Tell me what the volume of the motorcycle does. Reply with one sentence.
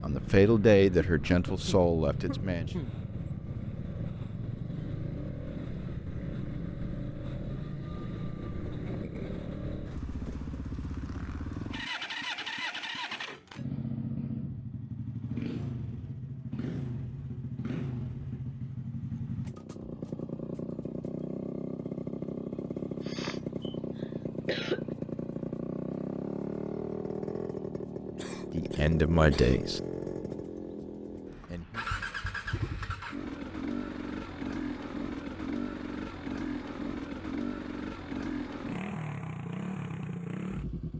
The loudness of the motorcycle stays about the same.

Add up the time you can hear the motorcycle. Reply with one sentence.
The motorcycle can be heard for 41 seconds in total.